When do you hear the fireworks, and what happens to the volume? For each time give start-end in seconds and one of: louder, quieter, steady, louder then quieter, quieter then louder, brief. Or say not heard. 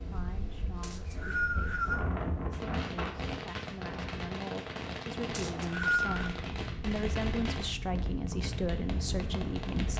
2.5-9.9 quieter.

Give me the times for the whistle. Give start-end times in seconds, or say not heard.
0.8-2.0, 5.3-6.2.